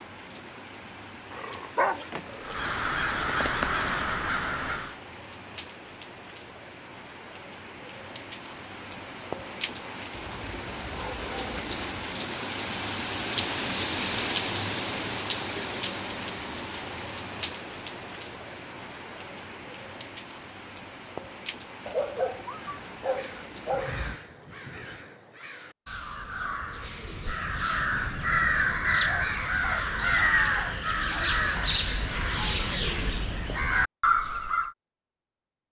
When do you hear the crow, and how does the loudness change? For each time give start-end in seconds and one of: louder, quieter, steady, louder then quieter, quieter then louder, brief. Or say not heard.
2.4-5.0 brief
22.5-34.8 louder.